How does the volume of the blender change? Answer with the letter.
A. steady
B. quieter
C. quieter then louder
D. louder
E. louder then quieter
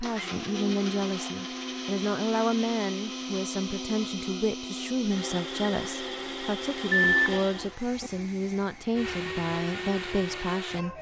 A.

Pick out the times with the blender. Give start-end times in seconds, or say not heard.
0.0-10.9.